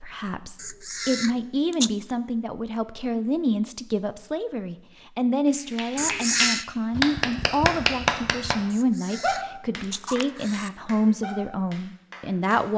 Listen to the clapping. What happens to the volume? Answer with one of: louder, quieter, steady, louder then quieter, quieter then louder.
quieter.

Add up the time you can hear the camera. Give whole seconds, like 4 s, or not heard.
4 s.